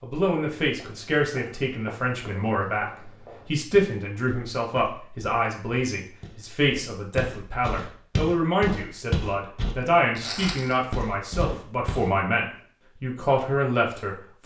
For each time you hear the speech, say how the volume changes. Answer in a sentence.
The speech can be heard from 0.0 to 14.4 s, at a steady volume.